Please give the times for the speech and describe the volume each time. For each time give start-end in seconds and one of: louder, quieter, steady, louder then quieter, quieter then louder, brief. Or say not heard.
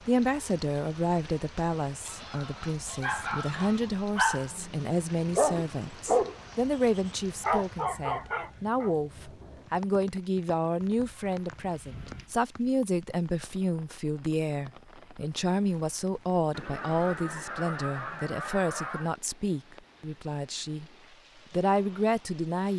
0.1-20.9 steady
21.5-22.7 brief.